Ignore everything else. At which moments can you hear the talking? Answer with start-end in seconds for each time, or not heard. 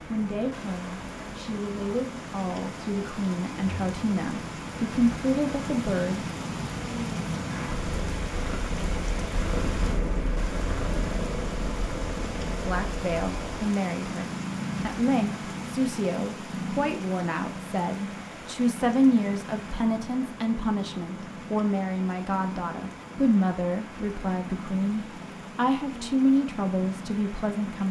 0.1-6.2, 12.7-27.8.